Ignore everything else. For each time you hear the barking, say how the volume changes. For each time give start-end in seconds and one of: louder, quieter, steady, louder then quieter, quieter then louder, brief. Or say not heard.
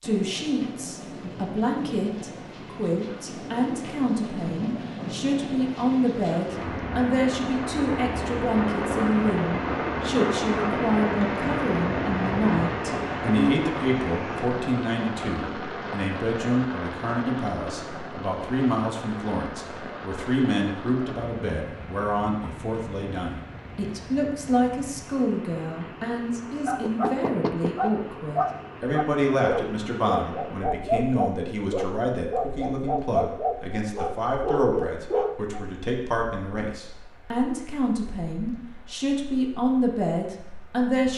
26.6-35.6 steady.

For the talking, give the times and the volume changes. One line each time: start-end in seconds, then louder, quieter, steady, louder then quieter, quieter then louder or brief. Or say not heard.
0.0-41.1 steady.